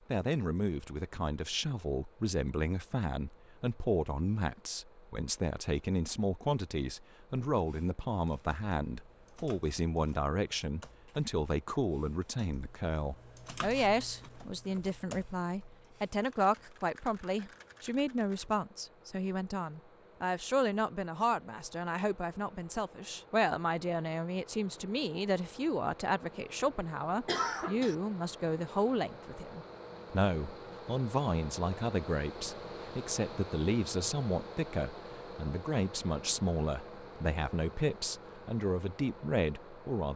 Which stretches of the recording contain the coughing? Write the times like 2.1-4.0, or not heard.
27.2-27.9.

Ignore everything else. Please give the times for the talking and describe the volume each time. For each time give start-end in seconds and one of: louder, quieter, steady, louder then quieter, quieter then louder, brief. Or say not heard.
0.1-40.1 steady.